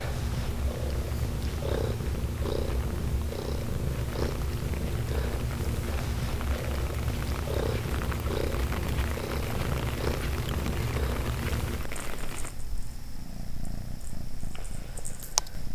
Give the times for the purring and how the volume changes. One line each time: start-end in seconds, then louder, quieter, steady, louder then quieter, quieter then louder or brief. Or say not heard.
0.0-15.7 quieter.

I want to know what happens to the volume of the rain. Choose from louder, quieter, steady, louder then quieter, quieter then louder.
louder.